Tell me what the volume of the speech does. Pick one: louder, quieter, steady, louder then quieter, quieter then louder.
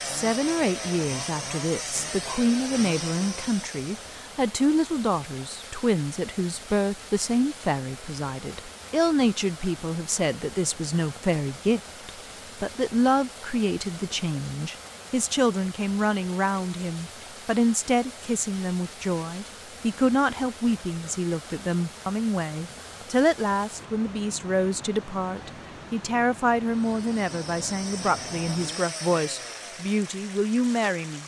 steady.